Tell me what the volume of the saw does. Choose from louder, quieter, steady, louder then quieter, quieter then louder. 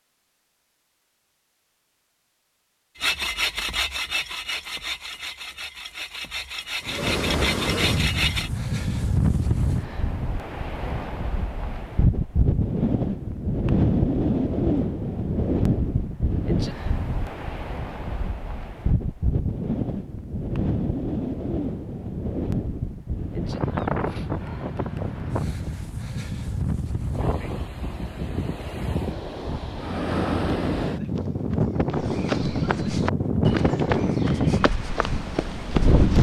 quieter then louder.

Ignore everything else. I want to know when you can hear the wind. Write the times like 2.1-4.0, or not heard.
6.8-36.1.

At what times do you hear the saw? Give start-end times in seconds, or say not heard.
3.0-8.5.